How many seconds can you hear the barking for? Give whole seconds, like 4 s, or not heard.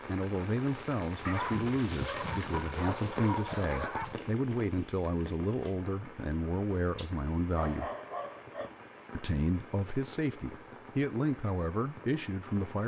5 s.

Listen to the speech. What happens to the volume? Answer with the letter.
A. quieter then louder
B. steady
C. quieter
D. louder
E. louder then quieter
B.